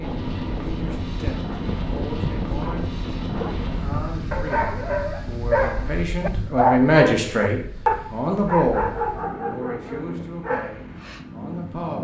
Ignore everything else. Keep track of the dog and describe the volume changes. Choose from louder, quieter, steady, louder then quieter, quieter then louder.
louder then quieter.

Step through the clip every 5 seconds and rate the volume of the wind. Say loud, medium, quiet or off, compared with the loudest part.
loud, medium, medium.